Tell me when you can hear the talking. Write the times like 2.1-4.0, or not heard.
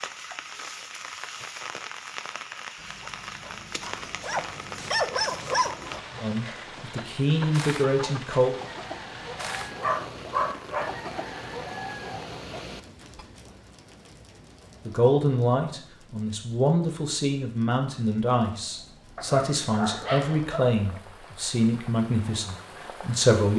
6.2-8.6, 14.8-23.5.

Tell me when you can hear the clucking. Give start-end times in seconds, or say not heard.
2.8-13.2.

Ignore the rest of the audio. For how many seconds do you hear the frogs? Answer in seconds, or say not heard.
not heard.